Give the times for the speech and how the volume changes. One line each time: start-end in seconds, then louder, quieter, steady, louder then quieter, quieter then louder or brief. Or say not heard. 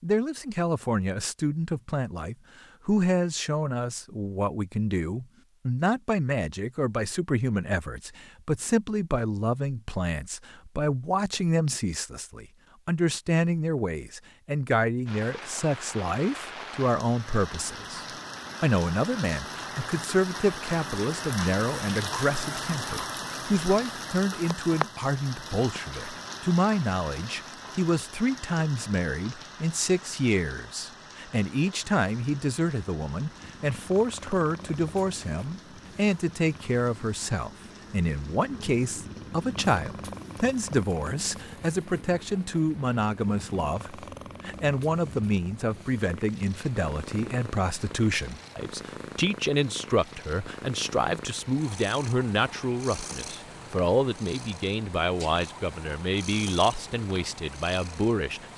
0.0-58.5 steady.